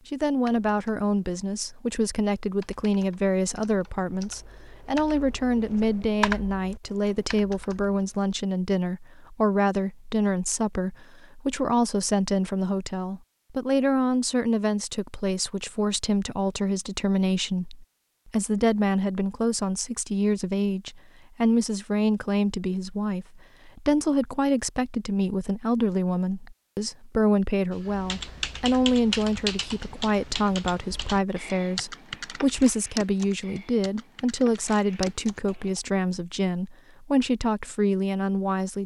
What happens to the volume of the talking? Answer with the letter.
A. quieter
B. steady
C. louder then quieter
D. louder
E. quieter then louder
B.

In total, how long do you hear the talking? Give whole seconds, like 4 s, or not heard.
39 s.